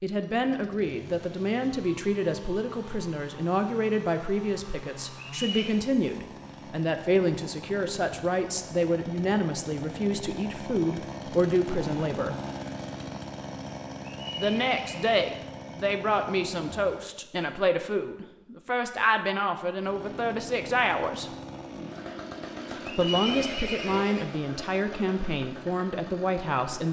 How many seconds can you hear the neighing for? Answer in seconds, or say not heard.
3 s.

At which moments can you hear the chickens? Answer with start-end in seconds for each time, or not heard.
not heard.